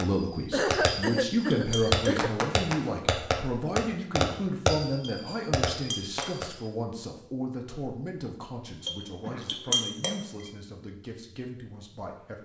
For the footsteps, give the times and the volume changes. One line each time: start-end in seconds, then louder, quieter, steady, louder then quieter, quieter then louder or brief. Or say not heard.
not heard.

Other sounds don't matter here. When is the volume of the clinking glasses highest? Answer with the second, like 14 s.
10 s.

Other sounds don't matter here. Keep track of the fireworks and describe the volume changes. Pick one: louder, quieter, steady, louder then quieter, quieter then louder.
louder then quieter.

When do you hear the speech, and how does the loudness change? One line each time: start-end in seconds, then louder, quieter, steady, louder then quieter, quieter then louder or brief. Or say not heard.
0.0-12.4 quieter.